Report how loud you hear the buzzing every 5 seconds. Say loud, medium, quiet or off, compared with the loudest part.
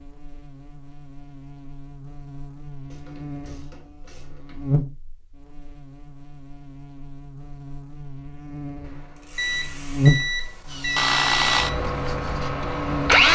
medium, quiet, loud.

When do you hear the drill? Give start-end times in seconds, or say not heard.
10.7-13.3.